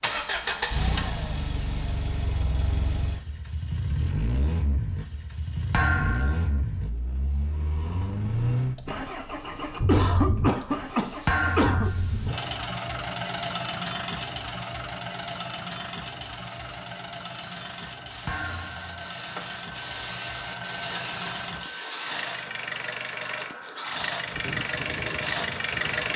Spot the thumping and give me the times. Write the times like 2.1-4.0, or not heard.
5.7-6.6, 11.2-12.2, 18.2-19.0.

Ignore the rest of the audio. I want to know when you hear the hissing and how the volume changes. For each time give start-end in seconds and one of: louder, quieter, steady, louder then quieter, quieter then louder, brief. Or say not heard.
10.8-26.1 louder then quieter.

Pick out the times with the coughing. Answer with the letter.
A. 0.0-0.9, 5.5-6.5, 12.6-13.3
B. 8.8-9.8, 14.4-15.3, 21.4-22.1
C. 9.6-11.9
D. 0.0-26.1
C.